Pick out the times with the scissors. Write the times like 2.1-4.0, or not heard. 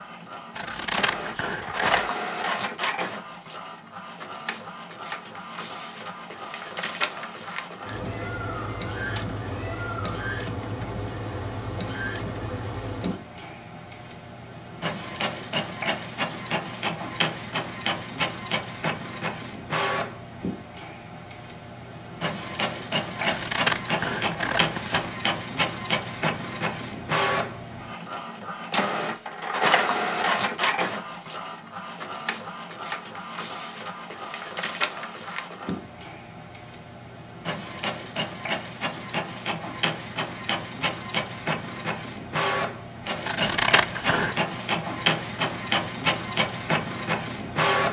0.6-2.1, 23.1-25.1, 43.2-44.4.